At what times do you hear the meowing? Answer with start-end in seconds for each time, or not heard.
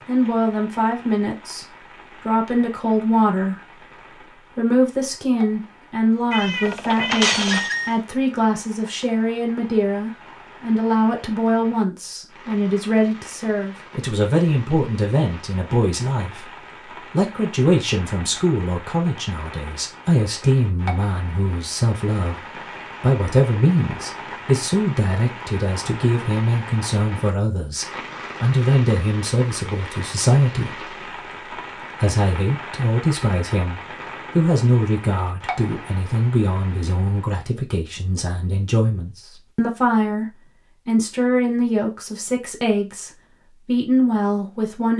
6.3-7.9.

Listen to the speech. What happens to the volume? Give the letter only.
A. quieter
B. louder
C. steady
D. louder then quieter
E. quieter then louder
C.